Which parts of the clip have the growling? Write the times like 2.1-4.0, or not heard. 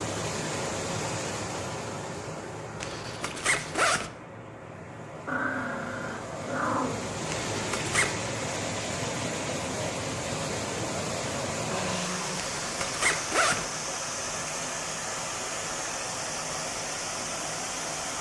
5.2-7.1, 11.7-12.3.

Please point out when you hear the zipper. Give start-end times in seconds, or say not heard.
2.8-4.1, 7.2-8.2, 12.3-13.7.